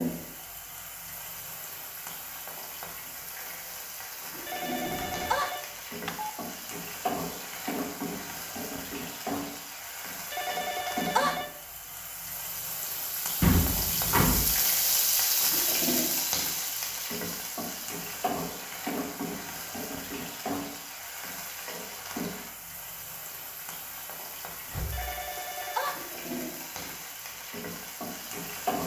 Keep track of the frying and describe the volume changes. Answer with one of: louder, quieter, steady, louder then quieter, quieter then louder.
louder then quieter.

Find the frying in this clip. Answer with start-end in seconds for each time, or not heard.
0.0-28.8.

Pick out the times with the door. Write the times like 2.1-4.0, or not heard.
4.8-5.4, 13.4-14.4, 24.7-25.2.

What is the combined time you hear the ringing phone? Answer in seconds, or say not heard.
4 s.